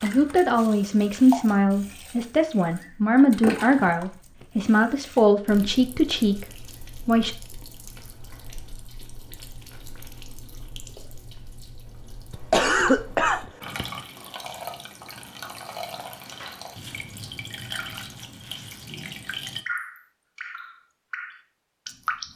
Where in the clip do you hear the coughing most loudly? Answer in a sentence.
The loudest moment of the coughing is at 13 seconds.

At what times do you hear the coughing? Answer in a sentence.
You can hear the coughing from 3.5 to 4.5 s and from 12.3 to 13.8 s.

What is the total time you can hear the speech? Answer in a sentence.
You can hear the speech for 7 seconds altogether.